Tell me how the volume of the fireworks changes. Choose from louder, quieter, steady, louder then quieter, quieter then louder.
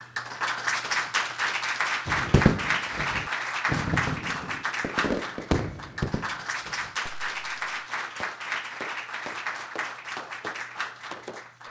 quieter.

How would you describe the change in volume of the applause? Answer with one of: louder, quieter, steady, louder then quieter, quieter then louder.
quieter.